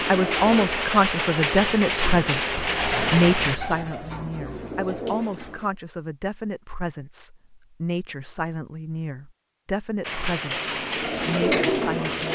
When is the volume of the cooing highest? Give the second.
12 s.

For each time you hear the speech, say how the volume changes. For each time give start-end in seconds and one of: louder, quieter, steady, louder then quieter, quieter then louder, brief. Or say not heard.
0.1-12.2 quieter.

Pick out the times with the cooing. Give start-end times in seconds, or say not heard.
0.0-5.7, 10.5-12.2.